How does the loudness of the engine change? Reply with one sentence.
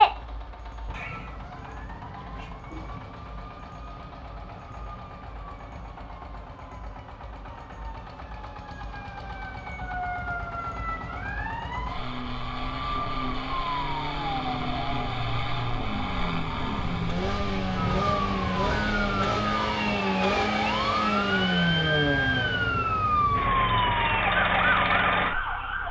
The loudness of the engine goes up.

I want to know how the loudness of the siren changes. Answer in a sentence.
The loudness of the siren goes up.